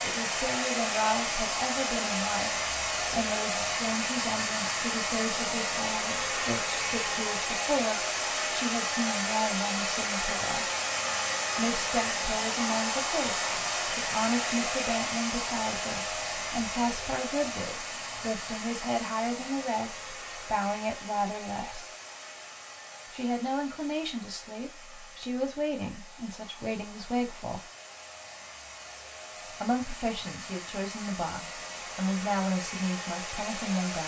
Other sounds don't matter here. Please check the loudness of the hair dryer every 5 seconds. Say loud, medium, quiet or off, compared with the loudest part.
loud, loud, loud, medium, quiet, quiet, medium.